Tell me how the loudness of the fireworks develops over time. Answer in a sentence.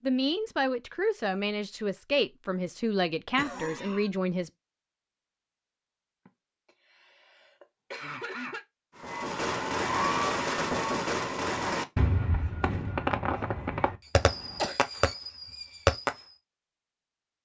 The volume of the fireworks goes down.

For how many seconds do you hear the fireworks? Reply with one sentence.
The fireworks can be heard for 7 seconds in total.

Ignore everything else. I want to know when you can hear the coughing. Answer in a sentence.
The coughing can be heard from 3.4 to 4.1 s, from 6.2 to 8.7 s and from 14.1 to 14.8 s.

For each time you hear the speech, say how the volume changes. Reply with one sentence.
You can hear the speech from 0.0 to 4.5 s, at a steady volume.